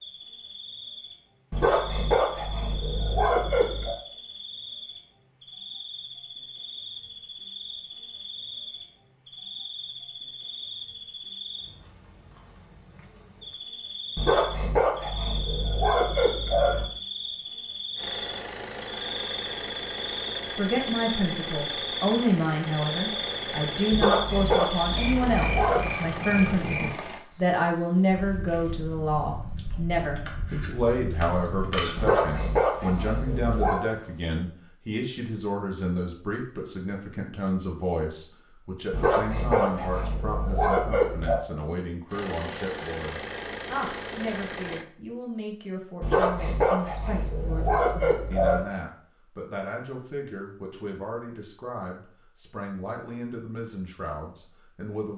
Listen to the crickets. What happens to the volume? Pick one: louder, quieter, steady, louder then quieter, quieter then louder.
louder.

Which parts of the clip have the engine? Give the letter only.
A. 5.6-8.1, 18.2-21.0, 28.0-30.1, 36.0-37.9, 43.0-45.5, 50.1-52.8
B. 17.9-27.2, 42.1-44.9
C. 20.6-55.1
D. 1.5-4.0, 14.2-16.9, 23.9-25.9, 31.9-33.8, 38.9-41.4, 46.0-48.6
B.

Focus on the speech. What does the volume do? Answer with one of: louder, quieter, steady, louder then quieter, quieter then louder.
quieter.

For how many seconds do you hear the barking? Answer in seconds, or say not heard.
14 s.